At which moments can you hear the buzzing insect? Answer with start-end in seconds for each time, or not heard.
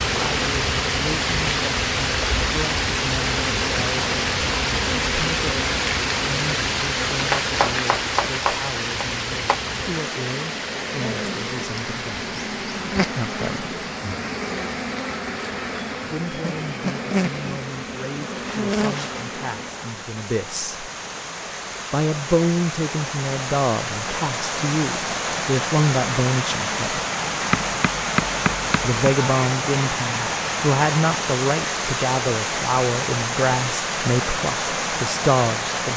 0.0-20.0.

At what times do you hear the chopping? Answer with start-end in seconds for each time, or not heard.
7.2-9.6, 27.5-29.0.